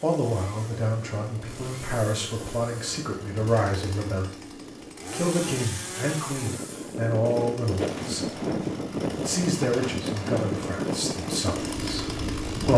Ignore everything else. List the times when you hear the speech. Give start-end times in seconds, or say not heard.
0.0-4.3, 5.1-8.4, 9.2-12.1.